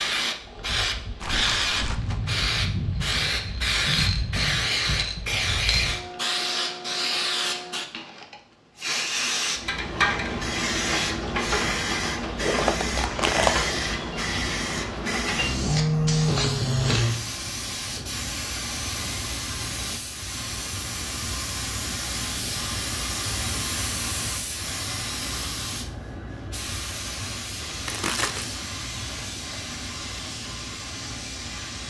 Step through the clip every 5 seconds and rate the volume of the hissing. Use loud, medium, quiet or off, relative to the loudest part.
loud, loud, loud, loud, medium, medium, medium.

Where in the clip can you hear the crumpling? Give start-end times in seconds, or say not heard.
1.2-2.2, 12.4-13.7, 27.9-28.6.